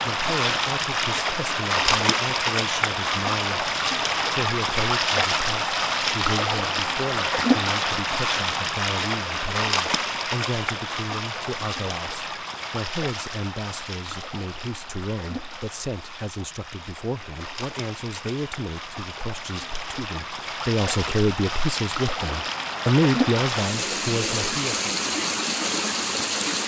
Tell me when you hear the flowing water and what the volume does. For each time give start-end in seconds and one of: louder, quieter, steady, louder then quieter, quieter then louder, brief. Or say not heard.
0.0-26.6 quieter then louder.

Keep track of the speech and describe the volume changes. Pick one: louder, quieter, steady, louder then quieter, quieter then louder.
louder.